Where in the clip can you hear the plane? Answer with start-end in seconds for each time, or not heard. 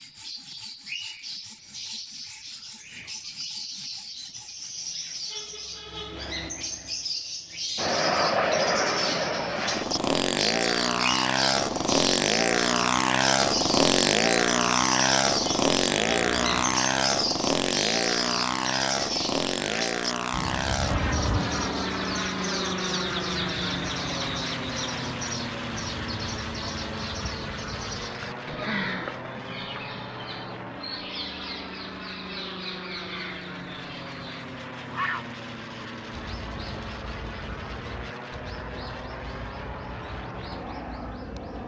7.8-41.6.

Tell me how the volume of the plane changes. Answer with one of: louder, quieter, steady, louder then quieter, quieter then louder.
quieter.